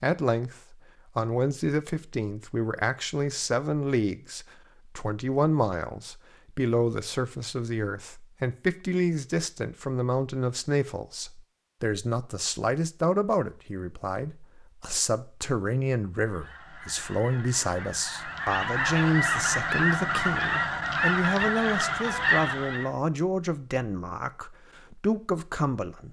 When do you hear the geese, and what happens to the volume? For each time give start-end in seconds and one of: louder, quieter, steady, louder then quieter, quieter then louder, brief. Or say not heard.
16.2-22.9 louder.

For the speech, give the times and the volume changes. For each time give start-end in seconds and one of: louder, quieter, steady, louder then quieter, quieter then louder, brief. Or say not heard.
0.0-26.0 steady.